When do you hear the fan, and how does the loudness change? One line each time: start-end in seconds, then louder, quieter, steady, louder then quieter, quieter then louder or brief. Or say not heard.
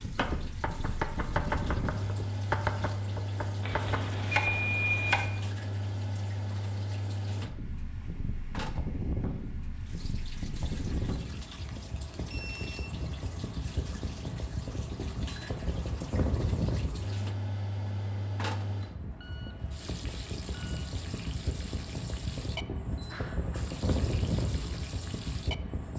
0.0-25.9 steady.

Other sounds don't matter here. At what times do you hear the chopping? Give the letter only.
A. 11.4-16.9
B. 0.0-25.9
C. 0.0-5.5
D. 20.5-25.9
C.